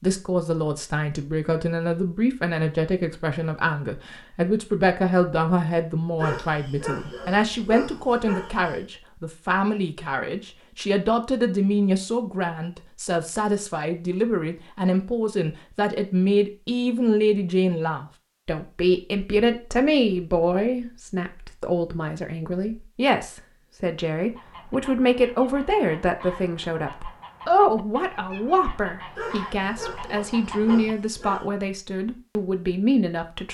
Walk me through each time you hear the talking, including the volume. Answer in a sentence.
You can hear the talking from 0.0 to 33.4 s, at a steady volume.